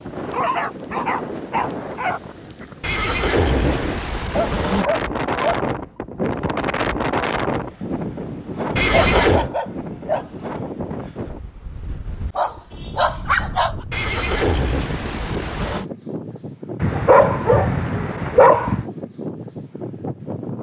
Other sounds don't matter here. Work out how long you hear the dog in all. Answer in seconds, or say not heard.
8 s.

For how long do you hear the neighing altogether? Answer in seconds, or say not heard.
5 s.